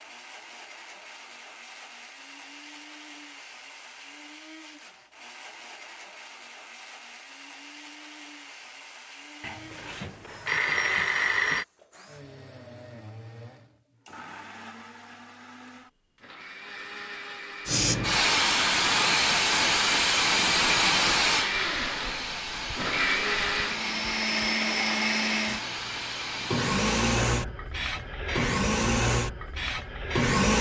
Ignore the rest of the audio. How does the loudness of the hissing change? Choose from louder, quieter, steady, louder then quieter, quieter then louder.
quieter.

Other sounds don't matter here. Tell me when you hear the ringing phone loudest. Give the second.
11 s.